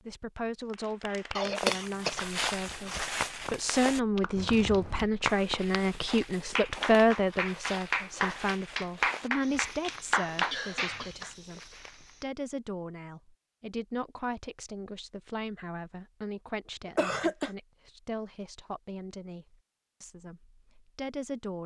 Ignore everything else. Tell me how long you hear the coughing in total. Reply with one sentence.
You can hear the coughing for 2 seconds altogether.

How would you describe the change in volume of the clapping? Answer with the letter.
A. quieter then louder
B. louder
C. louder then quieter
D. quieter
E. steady
B.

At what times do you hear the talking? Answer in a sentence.
You can hear the talking from 0.1 to 21.6 s.